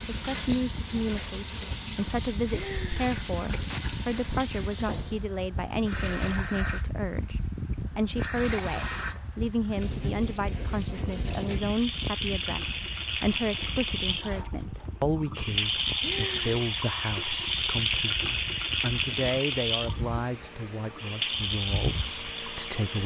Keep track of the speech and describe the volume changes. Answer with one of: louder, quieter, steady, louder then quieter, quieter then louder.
steady.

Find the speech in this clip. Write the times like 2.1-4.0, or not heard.
0.1-23.0.